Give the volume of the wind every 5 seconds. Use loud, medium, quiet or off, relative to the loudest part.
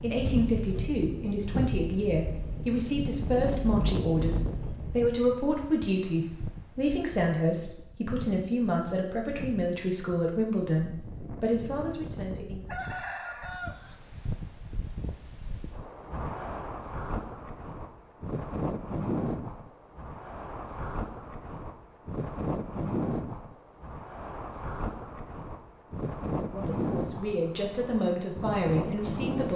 loud, medium, medium, loud, loud, loud.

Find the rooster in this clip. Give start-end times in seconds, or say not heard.
12.7-13.9.